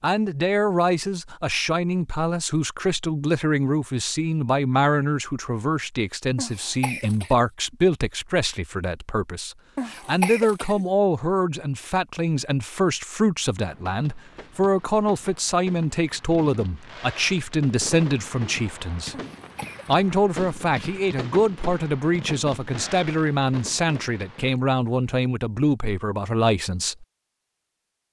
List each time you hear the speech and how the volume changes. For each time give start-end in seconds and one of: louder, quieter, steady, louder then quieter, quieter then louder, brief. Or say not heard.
0.0-19.1 steady
19.9-27.1 steady.